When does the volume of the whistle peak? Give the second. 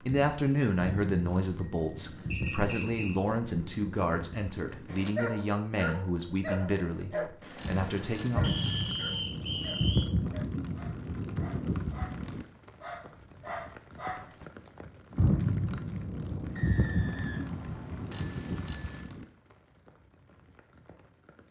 9 s.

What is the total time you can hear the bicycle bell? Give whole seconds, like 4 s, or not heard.
3 s.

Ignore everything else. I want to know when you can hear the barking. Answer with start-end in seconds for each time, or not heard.
4.8-14.4.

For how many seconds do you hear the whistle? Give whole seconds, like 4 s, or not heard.
4 s.